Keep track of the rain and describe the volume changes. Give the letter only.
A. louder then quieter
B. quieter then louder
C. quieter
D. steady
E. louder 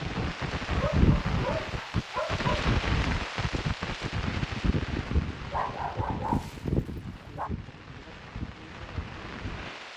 C.